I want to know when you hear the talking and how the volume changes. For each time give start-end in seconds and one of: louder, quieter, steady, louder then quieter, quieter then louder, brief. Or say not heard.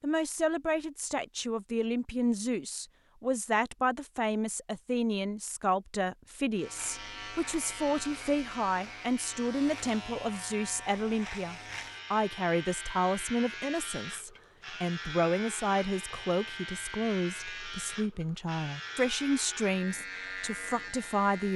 0.0-21.5 steady.